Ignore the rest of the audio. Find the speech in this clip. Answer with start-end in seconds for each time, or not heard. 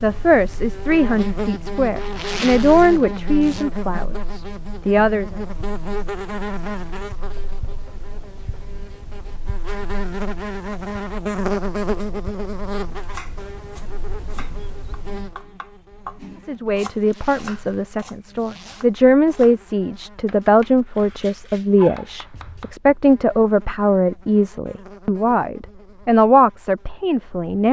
0.0-5.3, 16.4-27.6.